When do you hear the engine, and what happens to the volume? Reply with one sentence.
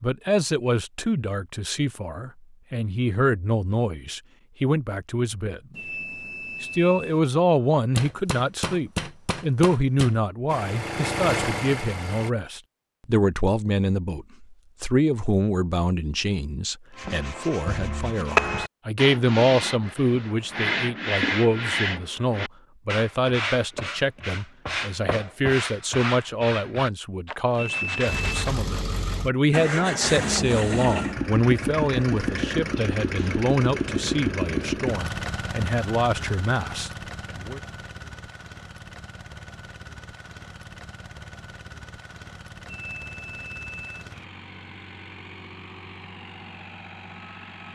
You can hear the engine briefly from 10.4 to 12.3 s; and from 28.1 to 47.7 s, getting quieter.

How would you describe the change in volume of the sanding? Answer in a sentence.
The volume of the sanding goes down.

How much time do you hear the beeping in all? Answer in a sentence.
The beeping can be heard for 4 seconds in total.